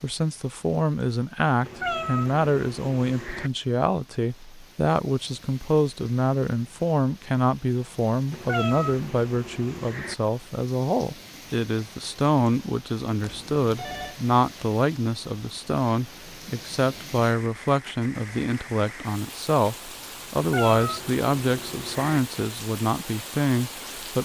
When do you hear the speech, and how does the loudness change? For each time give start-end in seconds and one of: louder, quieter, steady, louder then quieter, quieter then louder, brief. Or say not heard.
0.0-24.1 steady.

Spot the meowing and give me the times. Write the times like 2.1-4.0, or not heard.
1.6-3.5, 8.3-10.2, 20.4-22.2.